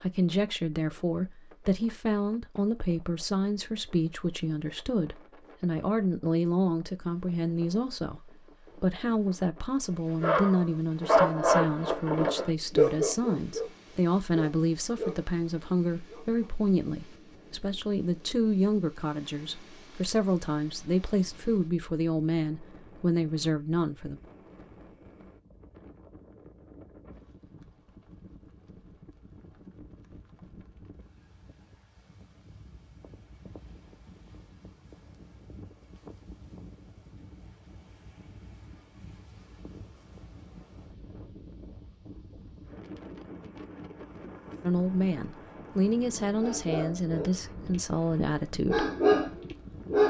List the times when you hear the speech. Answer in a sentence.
The speech can be heard from 0.0 to 24.2 s and from 44.6 to 48.9 s.